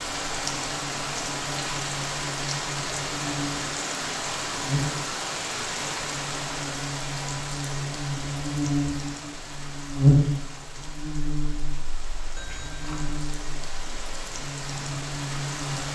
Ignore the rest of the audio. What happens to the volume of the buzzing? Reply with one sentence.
The volume of the buzzing goes up, then down.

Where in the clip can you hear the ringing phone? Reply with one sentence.
The ringing phone can be heard from 12.3 to 13.2 s.